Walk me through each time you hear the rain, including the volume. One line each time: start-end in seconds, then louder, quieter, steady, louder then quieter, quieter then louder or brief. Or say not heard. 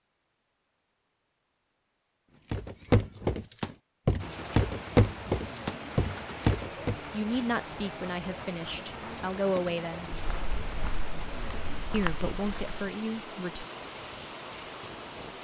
4.2-15.3 steady.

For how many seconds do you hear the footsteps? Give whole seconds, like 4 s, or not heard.
8 s.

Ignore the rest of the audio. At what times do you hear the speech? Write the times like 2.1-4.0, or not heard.
7.1-10.1, 11.9-13.7.